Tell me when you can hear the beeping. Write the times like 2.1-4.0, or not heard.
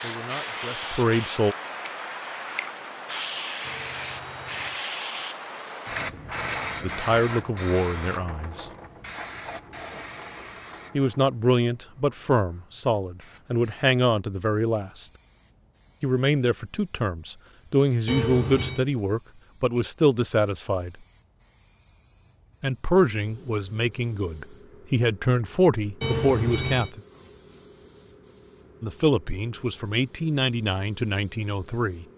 3.6-4.8, 18.1-18.9, 26.0-26.9.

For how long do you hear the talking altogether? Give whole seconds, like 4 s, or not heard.
20 s.